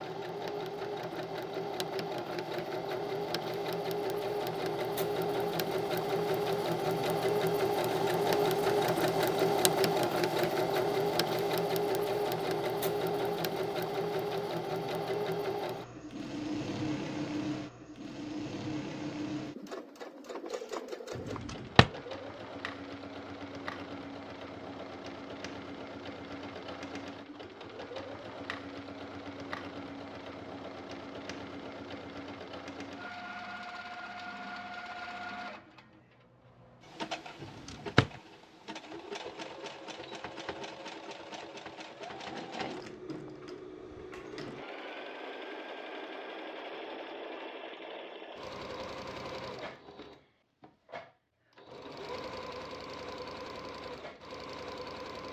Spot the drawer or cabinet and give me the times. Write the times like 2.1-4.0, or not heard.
21.1-21.9, 37.4-38.1.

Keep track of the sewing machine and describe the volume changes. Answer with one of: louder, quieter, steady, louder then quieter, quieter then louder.
quieter.